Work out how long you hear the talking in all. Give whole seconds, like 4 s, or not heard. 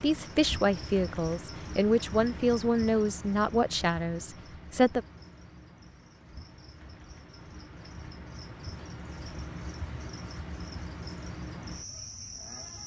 5 s.